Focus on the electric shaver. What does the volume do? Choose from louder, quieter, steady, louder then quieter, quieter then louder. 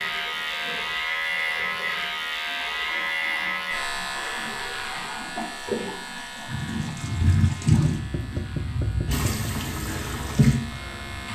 quieter.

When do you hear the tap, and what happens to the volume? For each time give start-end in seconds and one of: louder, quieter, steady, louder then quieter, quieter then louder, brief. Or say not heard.
0.0-11.3 louder.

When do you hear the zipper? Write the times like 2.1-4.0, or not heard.
not heard.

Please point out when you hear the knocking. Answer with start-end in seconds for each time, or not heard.
8.0-9.5.